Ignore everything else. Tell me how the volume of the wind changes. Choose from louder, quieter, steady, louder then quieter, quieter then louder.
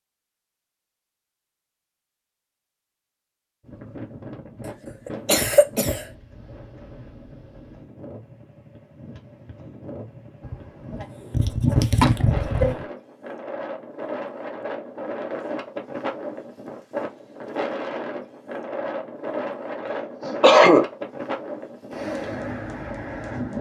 louder.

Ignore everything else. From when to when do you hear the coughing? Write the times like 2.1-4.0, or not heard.
5.0-6.0, 10.4-12.8, 19.9-20.9.